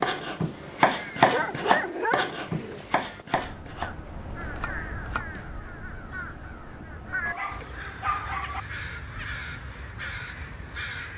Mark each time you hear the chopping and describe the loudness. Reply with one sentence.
You can hear the chopping from 0.0 to 5.5 s, getting quieter.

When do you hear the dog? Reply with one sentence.
You can hear the dog from 1.3 to 2.8 s and from 7.2 to 8.6 s.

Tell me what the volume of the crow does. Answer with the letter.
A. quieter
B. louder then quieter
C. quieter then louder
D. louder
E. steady
D.